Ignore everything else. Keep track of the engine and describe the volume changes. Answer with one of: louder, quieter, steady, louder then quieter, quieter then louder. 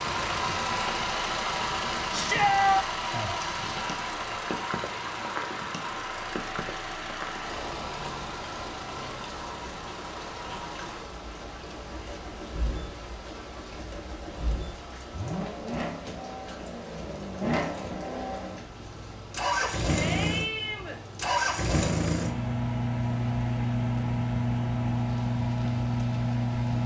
quieter then louder.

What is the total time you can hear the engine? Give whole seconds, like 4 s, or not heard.
27 s.